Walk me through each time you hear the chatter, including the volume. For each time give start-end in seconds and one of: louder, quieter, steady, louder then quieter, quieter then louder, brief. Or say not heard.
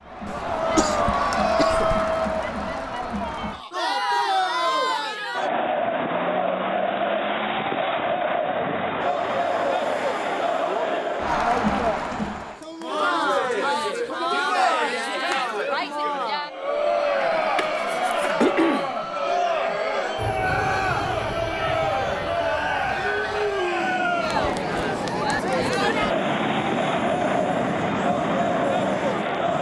0.1-29.5 steady.